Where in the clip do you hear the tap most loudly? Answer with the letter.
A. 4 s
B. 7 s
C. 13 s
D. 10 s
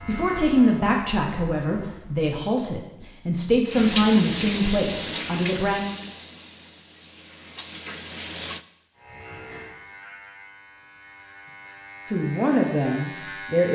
A.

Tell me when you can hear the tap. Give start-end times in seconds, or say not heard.
3.7-8.7.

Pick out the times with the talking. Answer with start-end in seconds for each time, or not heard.
0.1-5.8, 12.1-13.7.